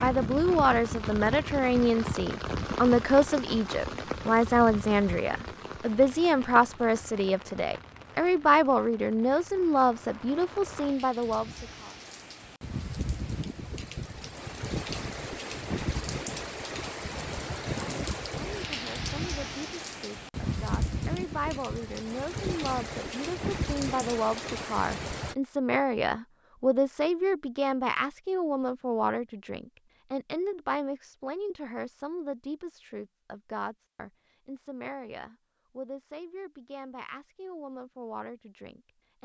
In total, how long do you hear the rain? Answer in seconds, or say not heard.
25 s.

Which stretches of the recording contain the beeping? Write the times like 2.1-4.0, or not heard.
not heard.